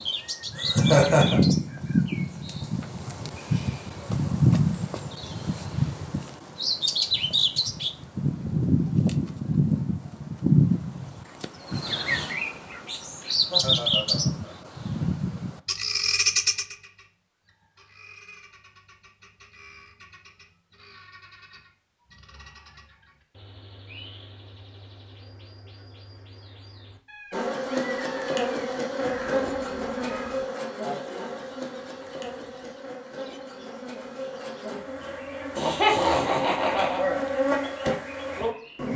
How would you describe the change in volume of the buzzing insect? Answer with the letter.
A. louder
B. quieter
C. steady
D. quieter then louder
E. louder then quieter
D.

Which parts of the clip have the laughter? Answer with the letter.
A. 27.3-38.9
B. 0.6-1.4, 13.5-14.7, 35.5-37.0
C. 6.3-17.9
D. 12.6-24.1
B.